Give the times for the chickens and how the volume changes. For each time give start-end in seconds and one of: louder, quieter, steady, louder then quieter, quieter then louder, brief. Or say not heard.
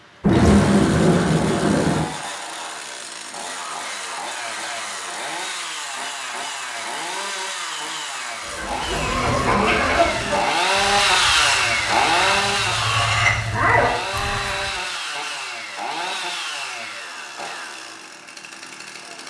8.4-14.7 quieter then louder.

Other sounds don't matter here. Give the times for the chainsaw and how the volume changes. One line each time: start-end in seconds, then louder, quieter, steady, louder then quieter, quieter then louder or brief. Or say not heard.
0.0-19.2 louder then quieter.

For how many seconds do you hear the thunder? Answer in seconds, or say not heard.
2 s.